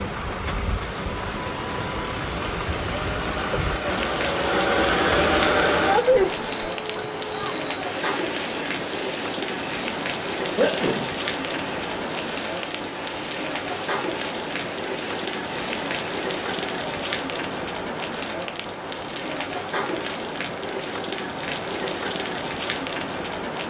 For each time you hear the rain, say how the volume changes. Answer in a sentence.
You can hear the rain from 0.0 to 23.6 s, at a steady volume.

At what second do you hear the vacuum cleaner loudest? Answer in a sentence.
The loudest moment of the vacuum cleaner is at 6 seconds.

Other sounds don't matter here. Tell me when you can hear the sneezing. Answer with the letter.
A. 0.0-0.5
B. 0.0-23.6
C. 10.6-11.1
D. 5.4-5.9
C.